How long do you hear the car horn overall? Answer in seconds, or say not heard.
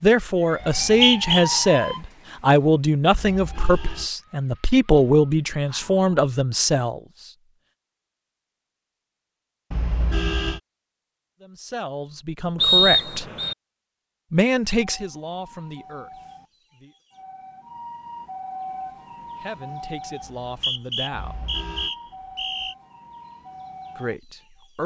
3 s.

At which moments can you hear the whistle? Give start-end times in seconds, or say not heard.
0.6-1.4, 12.6-13.6, 20.2-22.8.